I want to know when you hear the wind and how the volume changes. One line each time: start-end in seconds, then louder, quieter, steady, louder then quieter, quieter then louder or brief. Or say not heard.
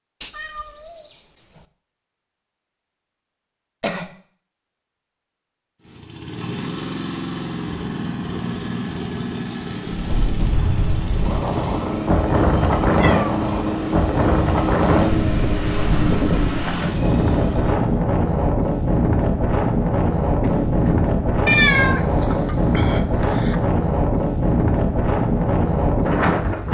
9.8-26.6 steady.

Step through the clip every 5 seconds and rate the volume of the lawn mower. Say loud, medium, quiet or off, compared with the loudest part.
off, loud, loud, loud, off, off.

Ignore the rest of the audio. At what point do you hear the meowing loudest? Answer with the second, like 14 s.
22 s.